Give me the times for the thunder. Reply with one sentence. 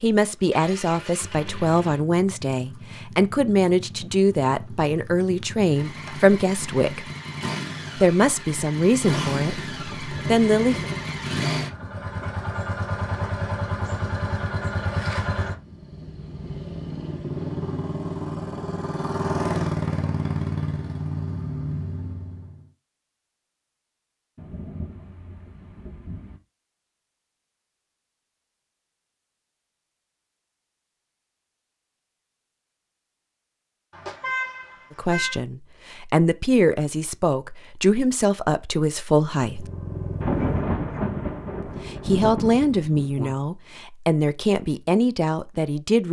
You can hear the thunder from 9.5 to 12.2 s, from 24.4 to 26.4 s and from 40.2 to 43.4 s.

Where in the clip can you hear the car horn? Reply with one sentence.
The car horn can be heard from 33.9 to 35.4 s.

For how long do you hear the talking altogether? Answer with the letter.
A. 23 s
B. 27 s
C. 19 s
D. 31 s
C.